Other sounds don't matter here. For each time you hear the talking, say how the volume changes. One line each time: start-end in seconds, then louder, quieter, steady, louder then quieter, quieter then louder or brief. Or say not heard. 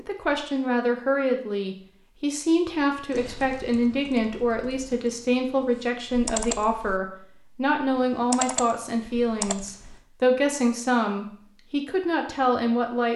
0.0-13.1 steady.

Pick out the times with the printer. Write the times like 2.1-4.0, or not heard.
not heard.